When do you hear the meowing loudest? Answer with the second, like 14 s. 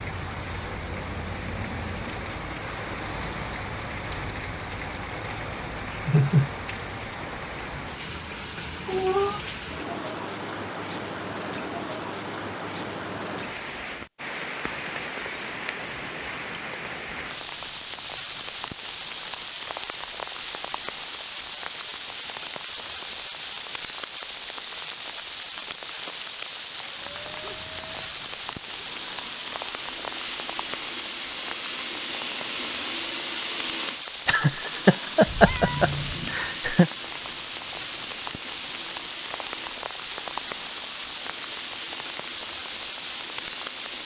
9 s.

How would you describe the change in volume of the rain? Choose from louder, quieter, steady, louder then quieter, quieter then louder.
steady.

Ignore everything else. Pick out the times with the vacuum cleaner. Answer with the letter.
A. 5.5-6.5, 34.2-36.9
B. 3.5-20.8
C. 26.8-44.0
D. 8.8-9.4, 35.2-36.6
C.